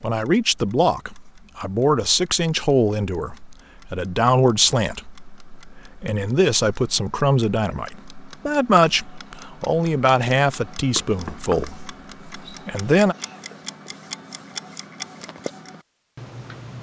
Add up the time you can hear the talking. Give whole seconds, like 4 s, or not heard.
13 s.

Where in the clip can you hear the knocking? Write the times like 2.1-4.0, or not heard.
10.9-11.7.